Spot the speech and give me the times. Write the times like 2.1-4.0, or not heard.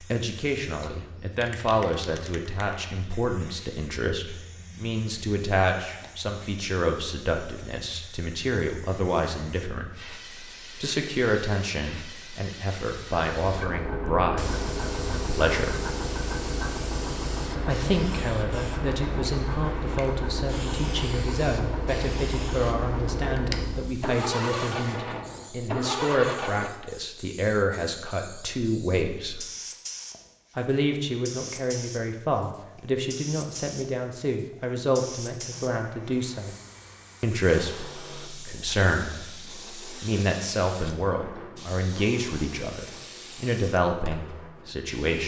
0.0-15.8, 17.6-29.4, 30.6-36.5, 37.2-45.2.